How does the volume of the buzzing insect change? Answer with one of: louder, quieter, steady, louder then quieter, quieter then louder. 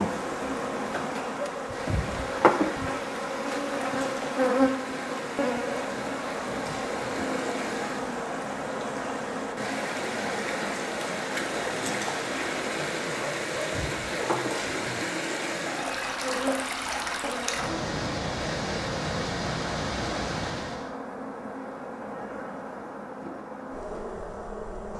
quieter.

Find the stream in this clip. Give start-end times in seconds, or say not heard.
0.0-20.9.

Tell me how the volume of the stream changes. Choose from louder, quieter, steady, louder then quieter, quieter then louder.
louder.